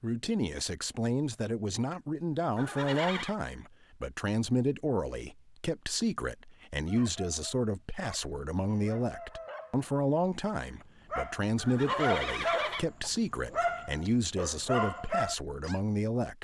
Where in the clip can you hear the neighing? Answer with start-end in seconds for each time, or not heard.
2.5-3.4, 11.6-12.8.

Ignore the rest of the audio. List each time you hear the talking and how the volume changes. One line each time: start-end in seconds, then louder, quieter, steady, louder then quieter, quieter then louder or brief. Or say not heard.
0.0-16.3 steady.